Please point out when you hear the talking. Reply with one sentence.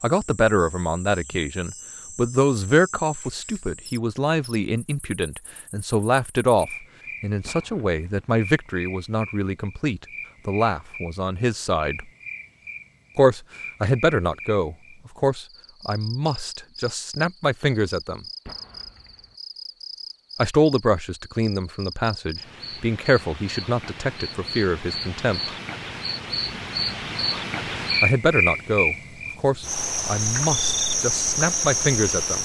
The talking can be heard from 0.0 to 12.1 s, from 13.2 to 18.2 s, from 20.4 to 25.5 s and from 28.0 to 32.3 s.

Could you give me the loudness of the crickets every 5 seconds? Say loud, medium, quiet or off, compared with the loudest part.
quiet, quiet, quiet, quiet, quiet, loud, loud.